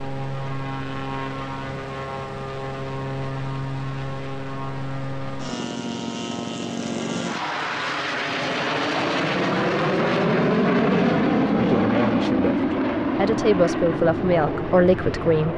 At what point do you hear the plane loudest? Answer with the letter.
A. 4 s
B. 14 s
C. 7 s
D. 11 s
D.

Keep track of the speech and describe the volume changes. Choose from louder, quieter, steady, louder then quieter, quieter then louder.
quieter then louder.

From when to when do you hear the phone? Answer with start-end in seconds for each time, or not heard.
not heard.